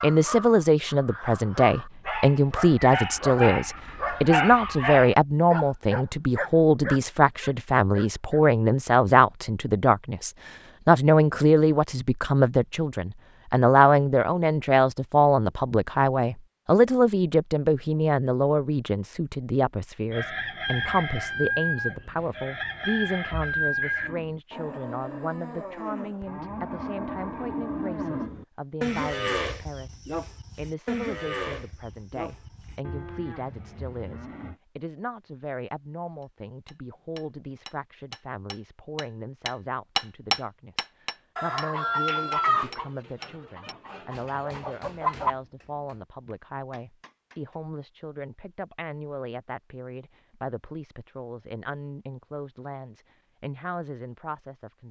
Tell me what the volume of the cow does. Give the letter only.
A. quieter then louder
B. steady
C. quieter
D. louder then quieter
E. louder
D.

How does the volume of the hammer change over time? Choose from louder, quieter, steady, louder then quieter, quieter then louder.
louder then quieter.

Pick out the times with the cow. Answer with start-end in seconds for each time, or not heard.
24.0-34.6.